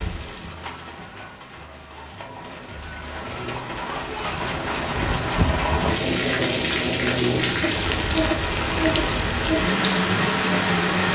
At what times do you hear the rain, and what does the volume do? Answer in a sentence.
The rain can be heard from 0.0 to 11.1 s, getting louder.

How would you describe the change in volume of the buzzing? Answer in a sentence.
The volume of the buzzing goes up.